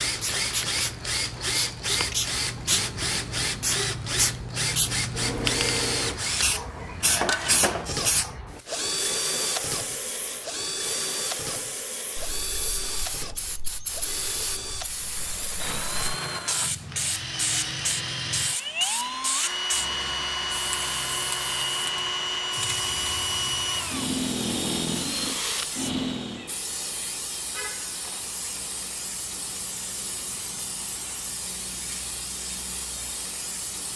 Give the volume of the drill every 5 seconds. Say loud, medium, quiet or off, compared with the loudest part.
loud, loud, medium, loud, loud, loud, off.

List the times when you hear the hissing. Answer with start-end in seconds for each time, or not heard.
0.0-33.9.